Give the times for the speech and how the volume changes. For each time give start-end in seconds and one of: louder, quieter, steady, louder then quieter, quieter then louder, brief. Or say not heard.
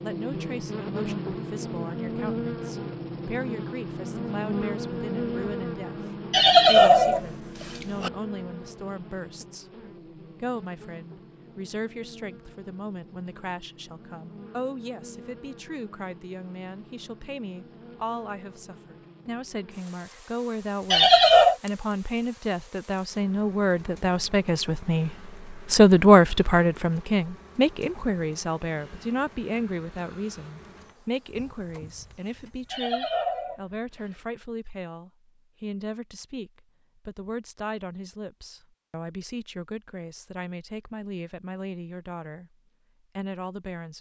0.0-42.5 louder then quieter
43.1-43.9 brief.